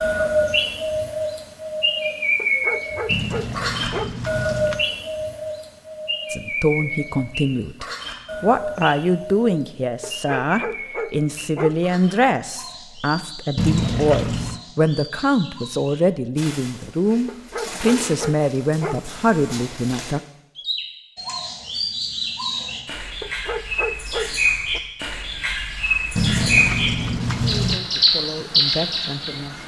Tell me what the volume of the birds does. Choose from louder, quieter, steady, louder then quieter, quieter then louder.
quieter then louder.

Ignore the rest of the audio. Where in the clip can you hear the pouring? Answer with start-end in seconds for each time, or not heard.
3.1-4.8, 13.6-14.6, 26.1-27.8.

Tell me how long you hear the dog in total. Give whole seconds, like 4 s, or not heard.
7 s.